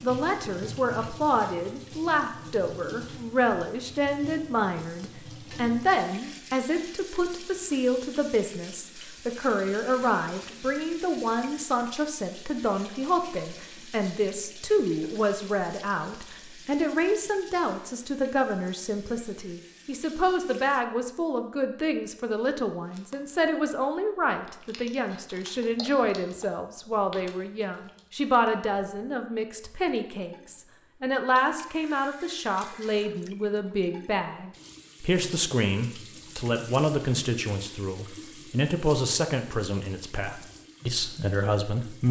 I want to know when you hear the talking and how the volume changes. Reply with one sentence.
You can hear the talking from 0.0 to 42.0 s, at a steady volume.